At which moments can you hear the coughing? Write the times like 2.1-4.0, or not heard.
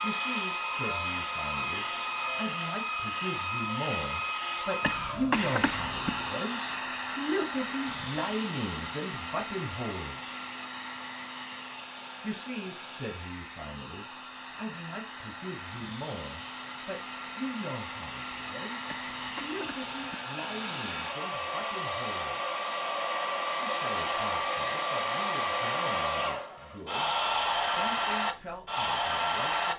4.8-6.1, 18.9-20.1.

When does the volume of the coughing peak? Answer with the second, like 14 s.
5 s.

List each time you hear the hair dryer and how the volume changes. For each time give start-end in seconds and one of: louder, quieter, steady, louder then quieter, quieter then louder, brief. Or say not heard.
0.0-29.7 quieter then louder.